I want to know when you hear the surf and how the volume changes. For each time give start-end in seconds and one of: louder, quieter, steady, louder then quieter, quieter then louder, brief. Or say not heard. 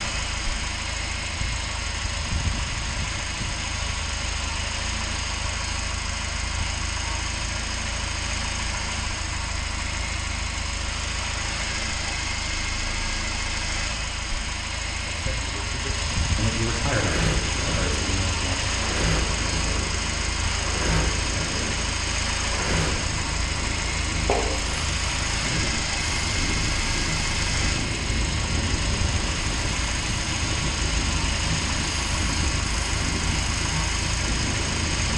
16.9-35.1 steady.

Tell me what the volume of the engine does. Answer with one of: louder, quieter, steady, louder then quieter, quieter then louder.
steady.